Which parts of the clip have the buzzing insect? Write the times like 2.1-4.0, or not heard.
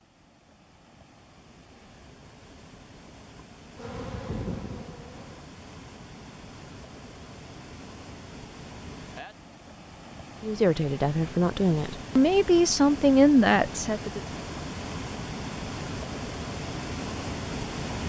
3.8-5.5.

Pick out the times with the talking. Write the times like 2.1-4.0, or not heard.
10.4-14.2.